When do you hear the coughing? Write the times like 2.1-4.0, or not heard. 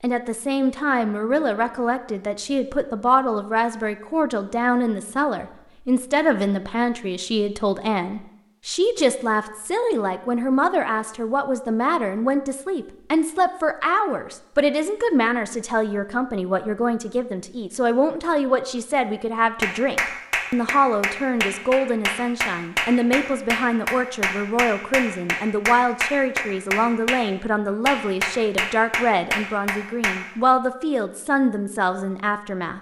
not heard.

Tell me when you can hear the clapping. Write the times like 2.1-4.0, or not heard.
19.6-27.2, 27.9-30.2.